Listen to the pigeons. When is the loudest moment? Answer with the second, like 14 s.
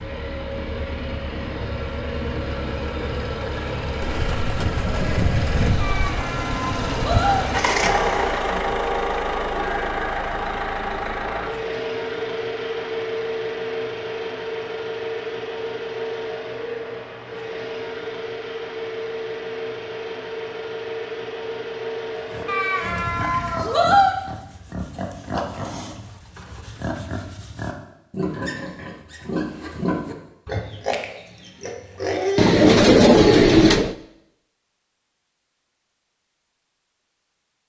33 s.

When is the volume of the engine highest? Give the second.
8 s.